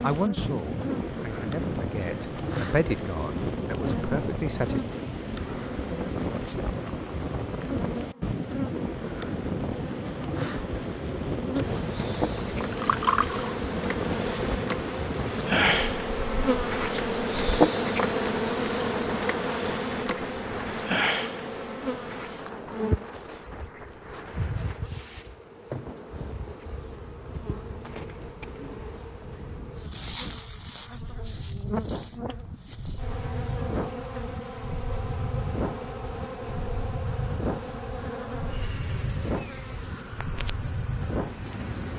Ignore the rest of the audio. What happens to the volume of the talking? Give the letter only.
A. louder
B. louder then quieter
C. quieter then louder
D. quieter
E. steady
B.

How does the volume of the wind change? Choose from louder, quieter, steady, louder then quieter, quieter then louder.
quieter then louder.